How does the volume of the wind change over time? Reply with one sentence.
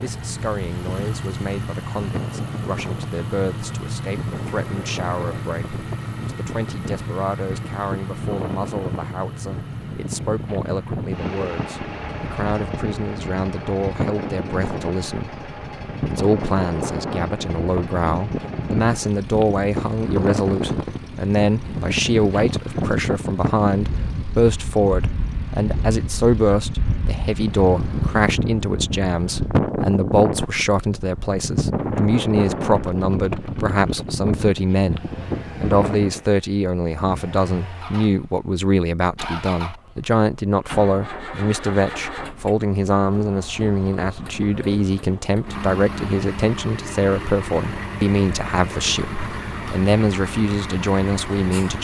The loudness of the wind goes up.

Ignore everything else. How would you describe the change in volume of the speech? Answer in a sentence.
The loudness of the speech goes up.